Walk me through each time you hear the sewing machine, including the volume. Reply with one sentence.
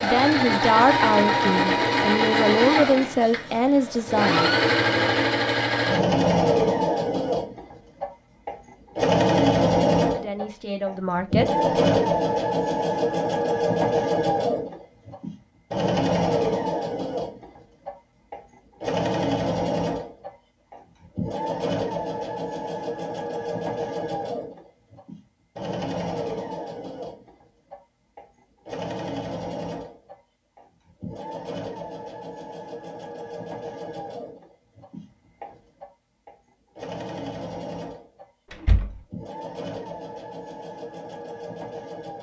The sewing machine can be heard from 0.0 to 42.1 s, getting quieter.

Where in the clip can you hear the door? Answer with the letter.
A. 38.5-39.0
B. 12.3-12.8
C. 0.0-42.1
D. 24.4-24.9
A.